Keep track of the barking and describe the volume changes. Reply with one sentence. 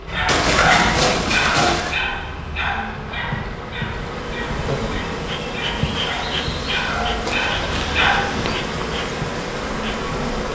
The loudness of the barking goes down, then up.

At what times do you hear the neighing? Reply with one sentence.
The neighing can be heard from 0.2 to 2.0 s and from 7.2 to 8.6 s.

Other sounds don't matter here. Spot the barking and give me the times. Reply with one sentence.
The barking can be heard from 0.1 to 8.2 s.